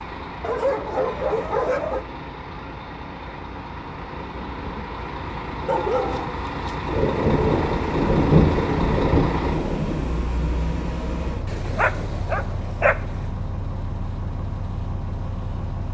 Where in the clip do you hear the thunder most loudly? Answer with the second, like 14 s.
8 s.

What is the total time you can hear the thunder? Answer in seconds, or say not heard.
3 s.